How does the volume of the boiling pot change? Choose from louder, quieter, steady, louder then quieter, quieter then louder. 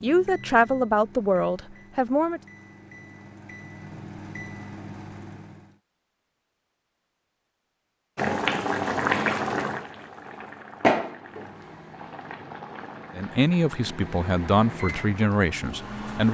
quieter.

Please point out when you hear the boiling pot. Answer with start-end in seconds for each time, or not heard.
8.2-16.1.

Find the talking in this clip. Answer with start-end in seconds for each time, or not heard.
0.0-2.4, 13.2-16.3.